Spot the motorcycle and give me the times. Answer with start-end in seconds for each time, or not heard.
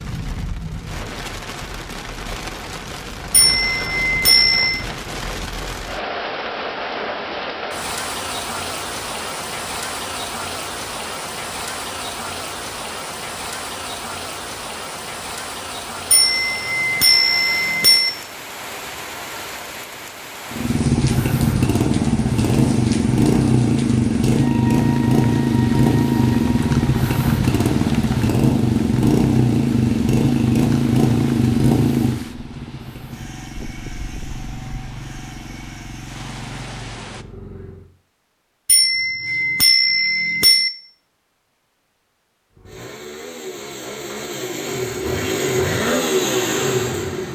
20.5-37.9, 42.5-47.2.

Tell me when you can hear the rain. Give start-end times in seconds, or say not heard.
0.0-37.2.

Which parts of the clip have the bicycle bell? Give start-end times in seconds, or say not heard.
3.3-4.8, 16.1-18.1, 38.6-40.7.